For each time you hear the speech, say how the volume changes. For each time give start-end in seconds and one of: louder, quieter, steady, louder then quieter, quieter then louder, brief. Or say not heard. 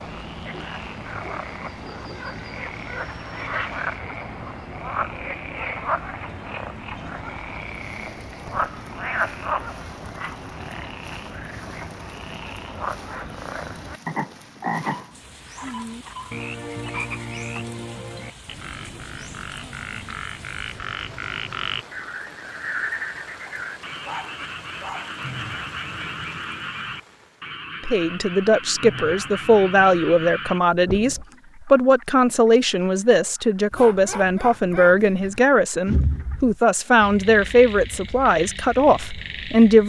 27.9-39.8 steady.